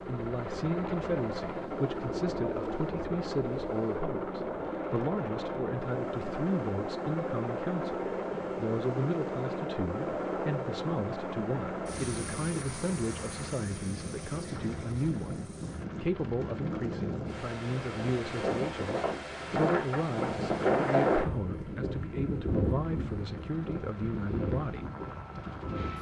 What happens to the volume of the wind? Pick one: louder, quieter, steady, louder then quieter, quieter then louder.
louder.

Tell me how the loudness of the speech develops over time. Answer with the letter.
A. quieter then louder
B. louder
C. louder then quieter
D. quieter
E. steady
E.